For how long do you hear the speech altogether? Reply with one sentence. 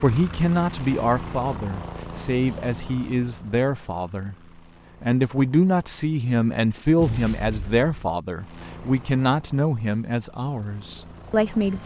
The speech can be heard for 11 seconds in total.